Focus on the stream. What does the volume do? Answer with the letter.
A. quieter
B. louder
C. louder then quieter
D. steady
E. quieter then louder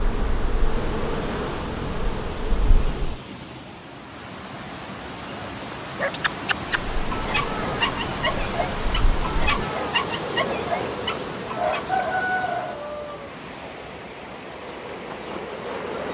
C.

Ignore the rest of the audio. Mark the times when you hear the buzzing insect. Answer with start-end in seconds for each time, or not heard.
0.0-3.2, 6.9-16.1.